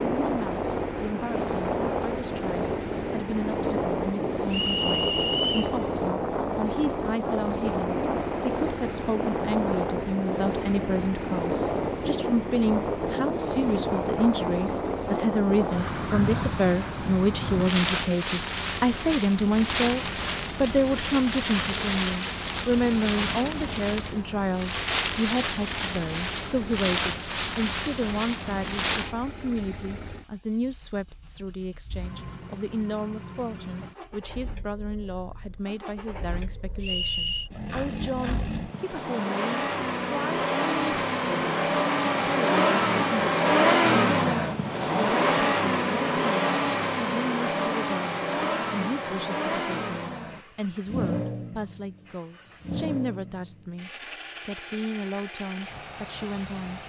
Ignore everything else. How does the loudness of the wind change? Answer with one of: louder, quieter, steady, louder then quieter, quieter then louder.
steady.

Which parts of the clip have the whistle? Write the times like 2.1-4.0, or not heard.
4.5-5.8, 36.8-37.5.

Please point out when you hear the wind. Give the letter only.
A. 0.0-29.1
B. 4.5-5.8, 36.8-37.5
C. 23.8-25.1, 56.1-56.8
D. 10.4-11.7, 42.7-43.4
A.